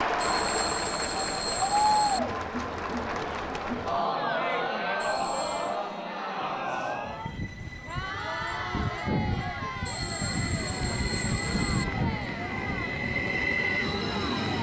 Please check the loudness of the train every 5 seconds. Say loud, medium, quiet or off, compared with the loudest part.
off, medium, loud.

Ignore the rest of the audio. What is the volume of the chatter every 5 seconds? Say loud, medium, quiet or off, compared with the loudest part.
loud, medium, medium.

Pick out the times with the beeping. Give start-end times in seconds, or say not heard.
0.2-2.2, 5.0-5.8, 9.8-11.8.